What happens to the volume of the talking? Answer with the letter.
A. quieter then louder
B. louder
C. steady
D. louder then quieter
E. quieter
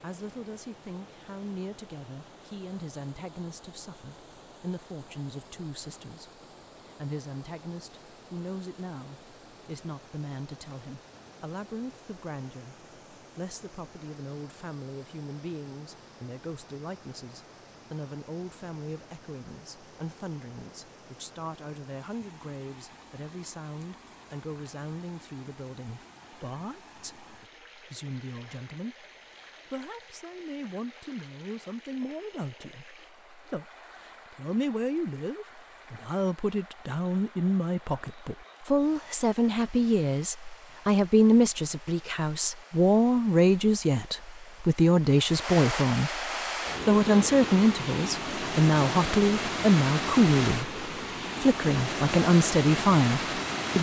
B.